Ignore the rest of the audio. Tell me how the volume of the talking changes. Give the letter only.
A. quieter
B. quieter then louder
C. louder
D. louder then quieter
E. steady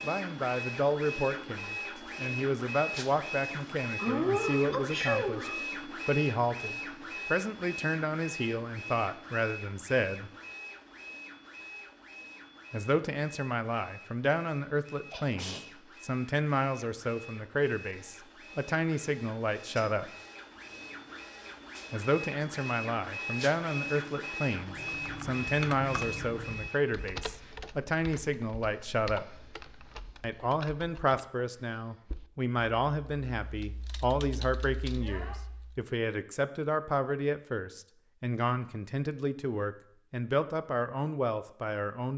E.